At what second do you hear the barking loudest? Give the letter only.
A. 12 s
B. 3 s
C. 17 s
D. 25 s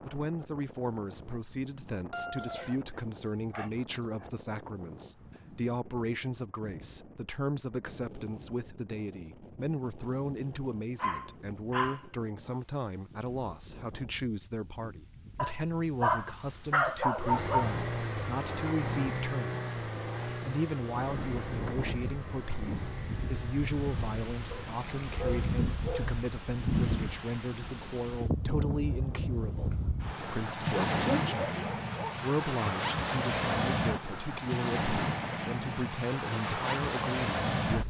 C.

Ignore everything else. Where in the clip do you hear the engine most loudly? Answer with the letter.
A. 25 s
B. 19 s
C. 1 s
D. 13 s
B.